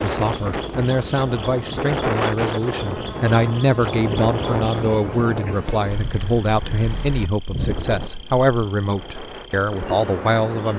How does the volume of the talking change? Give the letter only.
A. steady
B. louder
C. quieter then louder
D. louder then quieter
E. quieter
A.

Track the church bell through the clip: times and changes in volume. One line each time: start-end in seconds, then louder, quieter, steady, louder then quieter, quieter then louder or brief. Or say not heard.
not heard.